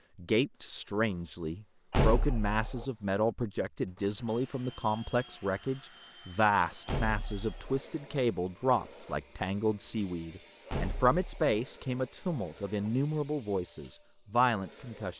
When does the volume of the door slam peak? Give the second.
2 s.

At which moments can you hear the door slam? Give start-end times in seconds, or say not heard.
1.9-2.9, 6.8-7.8, 10.7-11.6.